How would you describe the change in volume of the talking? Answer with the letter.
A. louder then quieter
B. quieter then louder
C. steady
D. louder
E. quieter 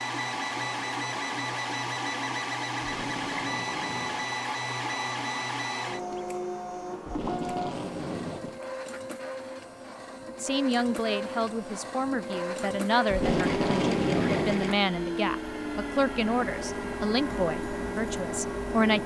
C.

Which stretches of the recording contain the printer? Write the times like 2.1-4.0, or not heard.
0.0-19.0.